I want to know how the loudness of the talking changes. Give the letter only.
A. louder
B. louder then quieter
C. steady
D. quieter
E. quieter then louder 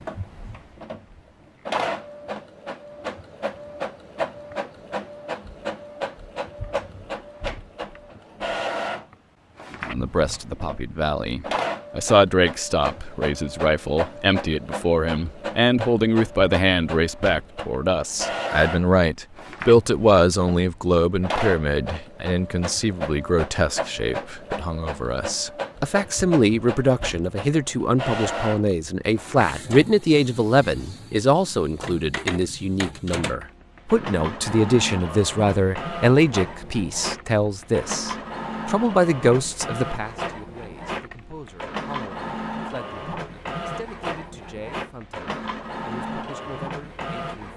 D.